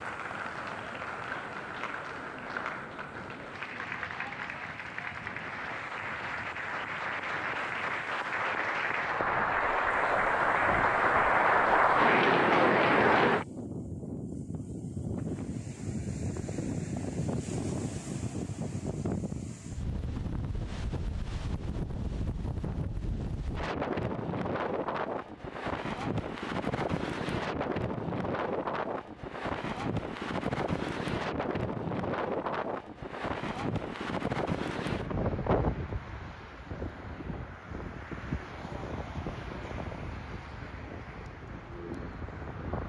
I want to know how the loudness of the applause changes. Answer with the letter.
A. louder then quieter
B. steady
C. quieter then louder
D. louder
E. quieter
D.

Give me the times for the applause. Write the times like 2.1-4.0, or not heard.
0.0-13.4.